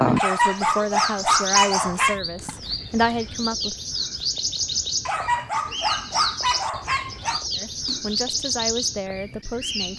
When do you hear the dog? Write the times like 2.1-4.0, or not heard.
0.1-2.2, 5.0-7.5.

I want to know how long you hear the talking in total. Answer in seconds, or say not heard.
6 s.